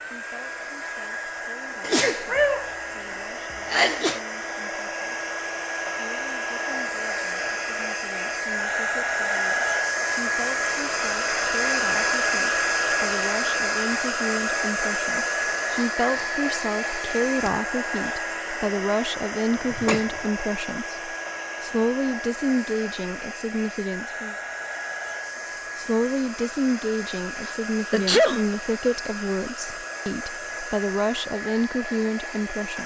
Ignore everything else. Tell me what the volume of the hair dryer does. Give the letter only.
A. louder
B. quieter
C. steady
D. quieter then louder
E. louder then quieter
E.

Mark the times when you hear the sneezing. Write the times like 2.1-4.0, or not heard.
1.8-2.8, 3.5-4.2, 19.7-20.2, 27.4-28.4.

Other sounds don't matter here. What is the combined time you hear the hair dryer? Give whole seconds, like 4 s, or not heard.
33 s.